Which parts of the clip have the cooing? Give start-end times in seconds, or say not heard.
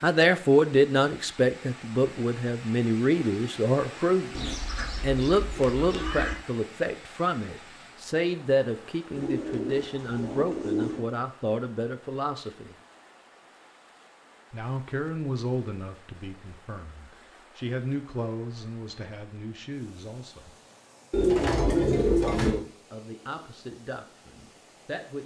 4.3-6.3, 9.2-11.1, 21.1-22.6.